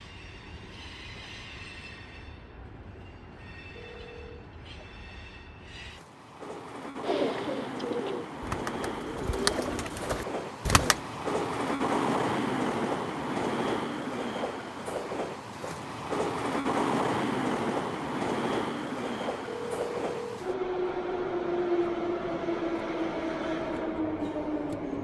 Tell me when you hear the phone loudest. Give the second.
20 s.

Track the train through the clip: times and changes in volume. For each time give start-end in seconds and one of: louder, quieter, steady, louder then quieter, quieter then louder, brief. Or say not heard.
0.0-24.9 louder.